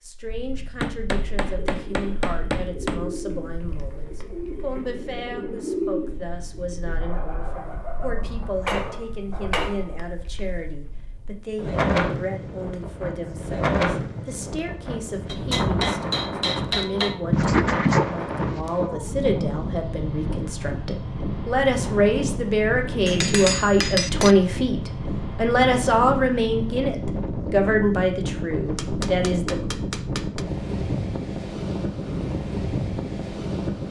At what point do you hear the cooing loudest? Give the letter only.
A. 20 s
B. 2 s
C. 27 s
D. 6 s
D.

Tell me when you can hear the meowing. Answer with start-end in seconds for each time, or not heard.
not heard.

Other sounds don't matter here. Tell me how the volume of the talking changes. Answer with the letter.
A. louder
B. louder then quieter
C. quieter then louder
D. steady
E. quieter
A.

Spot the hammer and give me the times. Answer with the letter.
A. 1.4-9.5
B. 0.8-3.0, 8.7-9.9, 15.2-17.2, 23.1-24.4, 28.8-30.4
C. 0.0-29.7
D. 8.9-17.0
B.